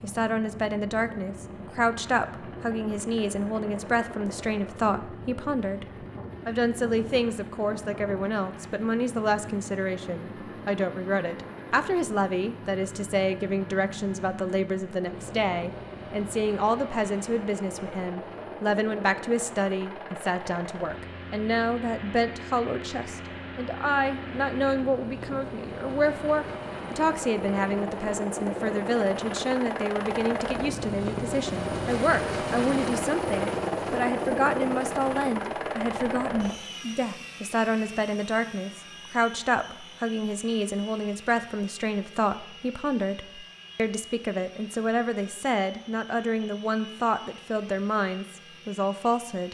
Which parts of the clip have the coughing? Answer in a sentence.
The coughing can't be heard in this clip.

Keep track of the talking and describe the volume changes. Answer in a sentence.
The volume of the talking stays about the same.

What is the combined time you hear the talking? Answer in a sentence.
The talking can be heard for 49 seconds in total.